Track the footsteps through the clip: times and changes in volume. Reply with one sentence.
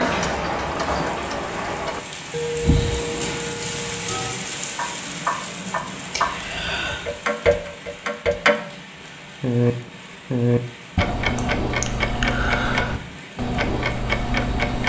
The footsteps can't be heard in this clip.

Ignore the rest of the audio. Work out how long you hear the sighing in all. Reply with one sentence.
The sighing can be heard for 3 seconds in total.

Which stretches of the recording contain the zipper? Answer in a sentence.
You can hear the zipper from 2.6 to 3.6 s.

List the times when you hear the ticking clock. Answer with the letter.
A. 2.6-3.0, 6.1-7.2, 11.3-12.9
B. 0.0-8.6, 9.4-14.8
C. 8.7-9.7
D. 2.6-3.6
B.